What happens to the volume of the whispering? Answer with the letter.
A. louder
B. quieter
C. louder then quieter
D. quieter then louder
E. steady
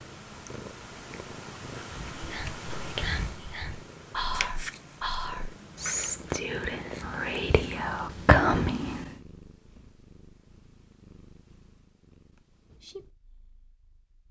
A.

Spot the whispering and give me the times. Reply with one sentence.
The whispering can be heard from 2.1 to 9.2 s.